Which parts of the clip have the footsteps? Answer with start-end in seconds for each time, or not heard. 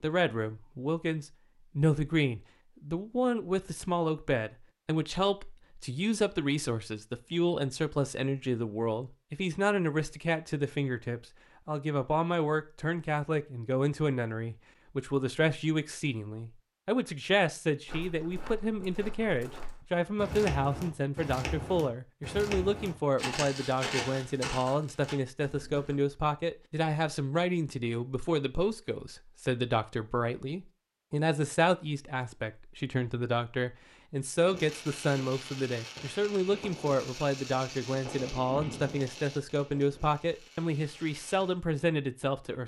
17.9-25.9.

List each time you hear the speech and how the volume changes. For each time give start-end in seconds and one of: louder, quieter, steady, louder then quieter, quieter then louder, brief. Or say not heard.
0.0-42.6 steady.